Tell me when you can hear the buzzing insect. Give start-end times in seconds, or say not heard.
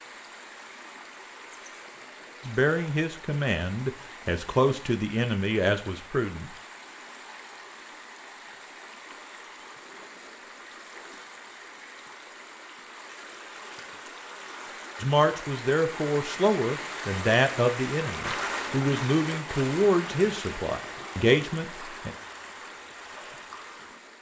not heard.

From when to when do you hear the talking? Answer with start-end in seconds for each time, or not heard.
2.5-6.5, 15.0-22.1.